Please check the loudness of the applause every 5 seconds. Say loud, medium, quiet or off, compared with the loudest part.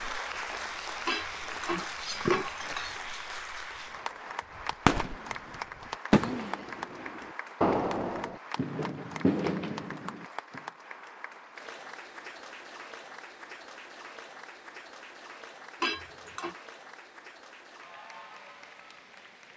loud, loud, medium, medium.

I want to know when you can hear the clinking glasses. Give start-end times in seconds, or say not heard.
1.1-3.0, 15.8-16.6.